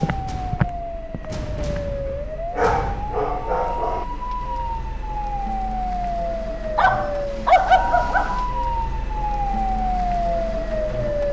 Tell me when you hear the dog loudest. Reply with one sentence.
The loudest moment of the dog is at 8 seconds.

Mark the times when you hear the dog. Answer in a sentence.
You can hear the dog from 2.5 to 4.0 s and from 6.8 to 8.4 s.